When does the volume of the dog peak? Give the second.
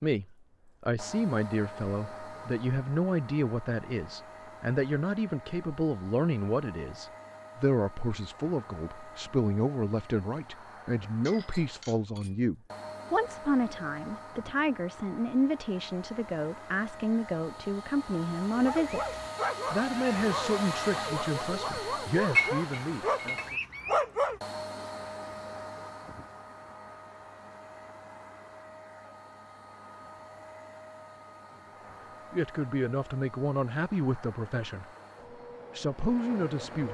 24 s.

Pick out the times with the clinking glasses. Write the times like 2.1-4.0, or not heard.
11.2-12.4, 22.4-23.4.